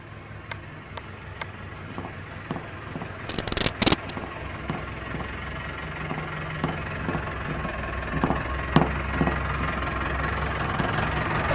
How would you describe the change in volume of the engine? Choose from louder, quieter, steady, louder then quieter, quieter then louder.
louder.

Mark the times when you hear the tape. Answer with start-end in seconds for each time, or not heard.
3.2-4.2.